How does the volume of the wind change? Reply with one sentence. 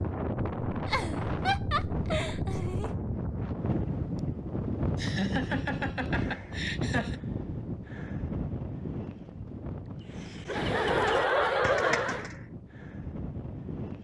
The loudness of the wind goes down.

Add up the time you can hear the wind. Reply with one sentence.
The wind can be heard for 14 seconds in total.